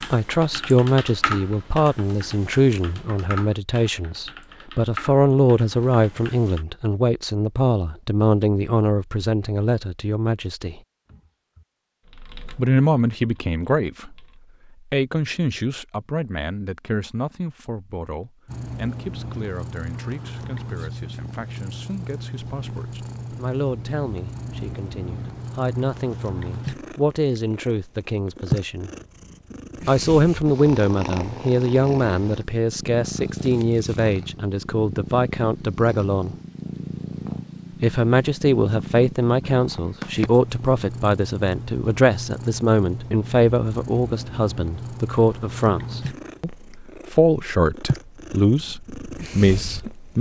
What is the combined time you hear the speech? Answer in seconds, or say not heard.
46 s.